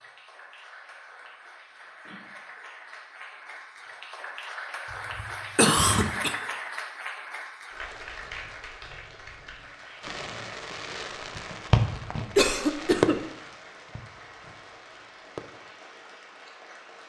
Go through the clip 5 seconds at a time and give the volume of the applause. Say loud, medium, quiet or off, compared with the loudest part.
medium, loud, medium, medium.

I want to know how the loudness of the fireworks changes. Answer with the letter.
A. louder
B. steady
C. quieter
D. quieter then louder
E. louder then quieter
E.